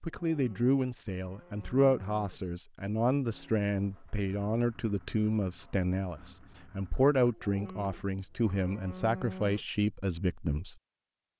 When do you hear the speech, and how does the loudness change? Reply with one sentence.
The speech can be heard from 0.0 to 10.8 s, at a steady volume.